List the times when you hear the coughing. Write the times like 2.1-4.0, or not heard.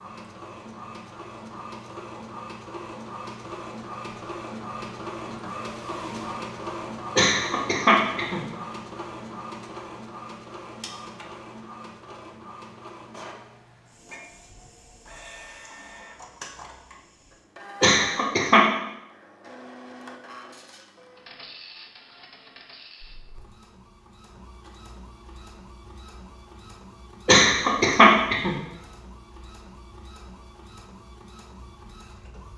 7.2-8.4, 17.8-18.6, 27.2-28.6.